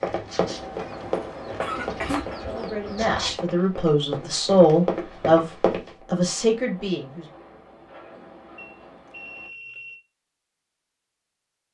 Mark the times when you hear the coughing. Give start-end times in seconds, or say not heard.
1.6-2.2.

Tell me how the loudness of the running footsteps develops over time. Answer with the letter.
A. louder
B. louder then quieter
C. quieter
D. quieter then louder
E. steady
D.